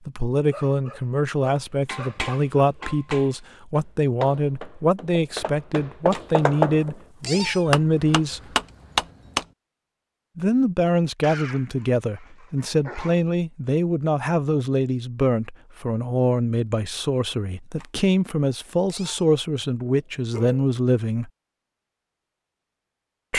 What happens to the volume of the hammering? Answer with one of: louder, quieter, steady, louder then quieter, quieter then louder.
louder.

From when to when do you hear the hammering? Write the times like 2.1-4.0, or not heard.
1.9-9.4.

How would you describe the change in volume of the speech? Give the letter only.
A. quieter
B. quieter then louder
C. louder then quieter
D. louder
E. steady
E.